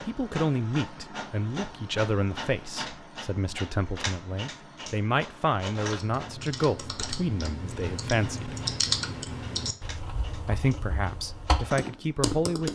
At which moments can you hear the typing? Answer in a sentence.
You can hear the typing from 5.9 to 12.7 s.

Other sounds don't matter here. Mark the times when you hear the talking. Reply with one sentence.
You can hear the talking from 0.1 to 8.6 s and from 10.4 to 12.7 s.